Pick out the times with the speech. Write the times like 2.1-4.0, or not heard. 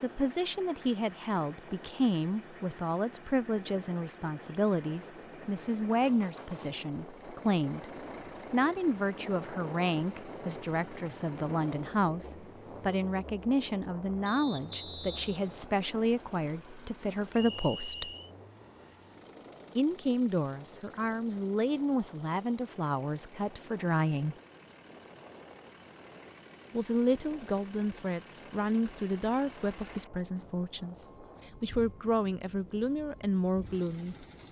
0.0-7.8, 8.5-18.1, 19.8-24.4, 26.7-34.1.